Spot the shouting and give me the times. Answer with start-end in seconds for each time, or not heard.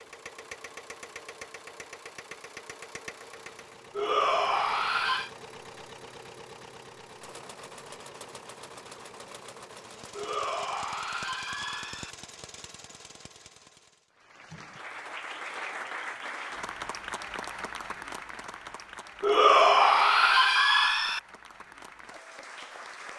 4.0-5.3, 10.1-12.2, 19.2-21.2.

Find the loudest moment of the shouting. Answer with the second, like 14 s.
20 s.